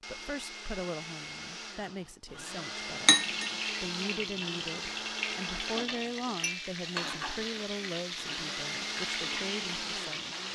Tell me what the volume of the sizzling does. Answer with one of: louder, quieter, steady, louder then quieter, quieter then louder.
steady.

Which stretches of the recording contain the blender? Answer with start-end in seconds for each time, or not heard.
0.0-5.8, 8.2-10.5.